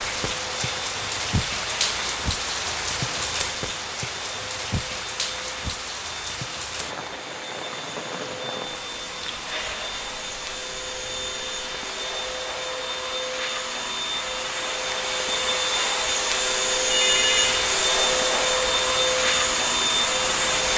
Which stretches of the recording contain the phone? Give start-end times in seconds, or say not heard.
16.9-17.6.